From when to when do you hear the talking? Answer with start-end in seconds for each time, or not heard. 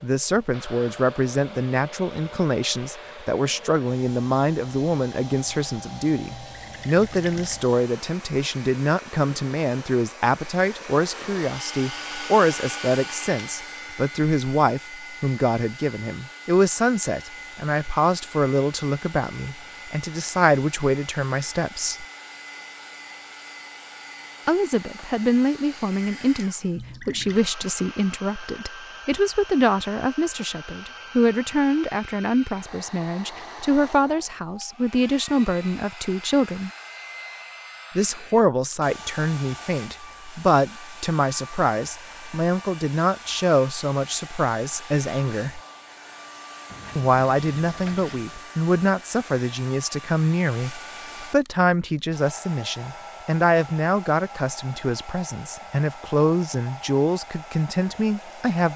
0.0-22.1, 24.4-36.7, 38.0-45.6, 47.0-58.7.